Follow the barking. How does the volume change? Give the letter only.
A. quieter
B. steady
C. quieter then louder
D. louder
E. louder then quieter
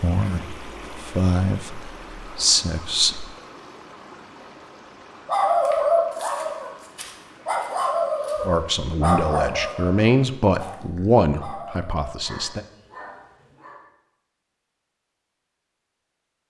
A.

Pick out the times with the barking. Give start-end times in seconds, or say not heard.
5.2-13.8.